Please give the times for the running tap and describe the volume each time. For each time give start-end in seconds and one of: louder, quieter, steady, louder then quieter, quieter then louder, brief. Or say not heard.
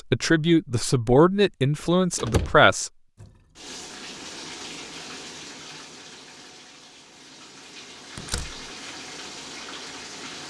3.1-10.4 quieter then louder.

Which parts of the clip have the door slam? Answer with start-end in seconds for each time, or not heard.
2.1-2.6, 8.2-8.7.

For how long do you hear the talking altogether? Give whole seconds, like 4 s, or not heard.
3 s.